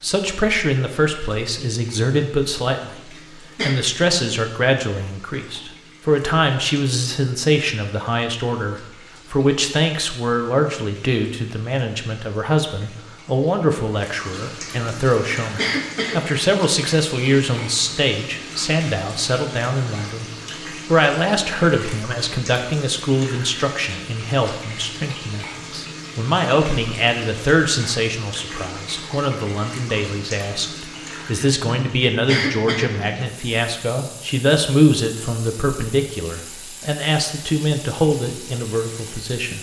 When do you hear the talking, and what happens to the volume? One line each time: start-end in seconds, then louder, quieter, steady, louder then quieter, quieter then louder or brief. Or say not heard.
0.0-39.5 steady.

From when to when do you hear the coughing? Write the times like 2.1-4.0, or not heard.
3.1-3.8, 15.6-16.2, 32.2-32.9.